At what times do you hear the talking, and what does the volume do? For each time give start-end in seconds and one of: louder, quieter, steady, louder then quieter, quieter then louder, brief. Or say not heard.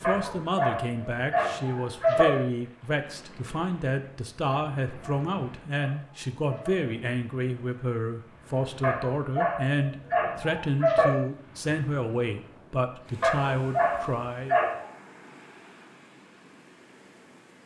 0.0-14.6 steady.